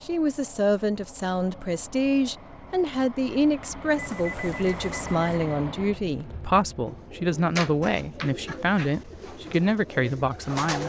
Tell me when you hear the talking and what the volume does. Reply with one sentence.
You can hear the talking from 0.0 to 10.8 s, at a steady volume.